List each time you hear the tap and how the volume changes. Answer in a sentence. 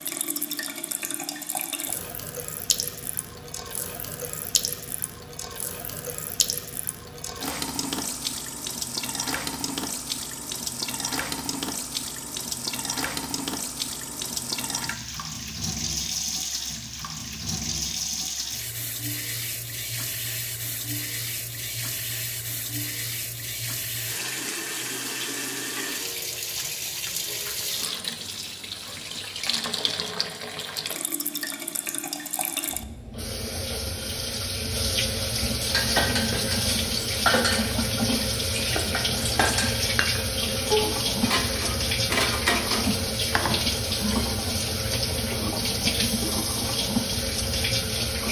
The tap can be heard from 0.0 to 48.2 s, getting louder.